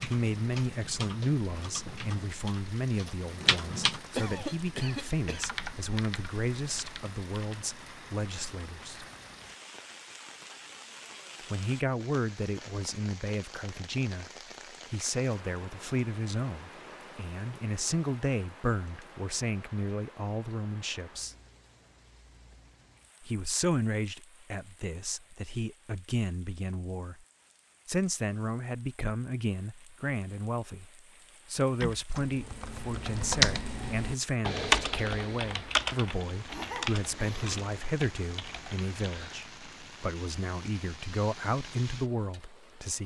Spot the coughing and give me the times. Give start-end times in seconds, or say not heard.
4.2-5.5, 36.5-37.6.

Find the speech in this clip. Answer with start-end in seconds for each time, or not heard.
0.0-9.1, 11.4-14.3, 14.9-21.4, 23.2-27.2, 27.9-43.0.